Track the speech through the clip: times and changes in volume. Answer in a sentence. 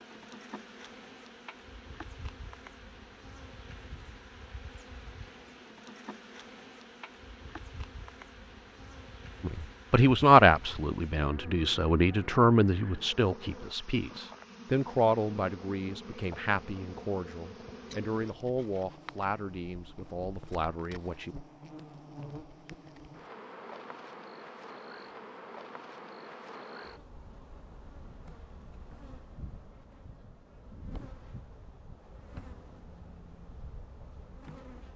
The speech can be heard from 9.4 to 21.4 s, getting quieter.